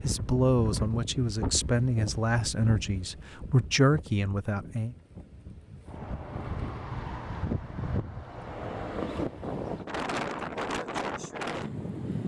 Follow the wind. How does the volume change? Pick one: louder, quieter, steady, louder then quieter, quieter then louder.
quieter then louder.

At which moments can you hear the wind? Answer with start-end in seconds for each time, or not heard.
0.0-12.2.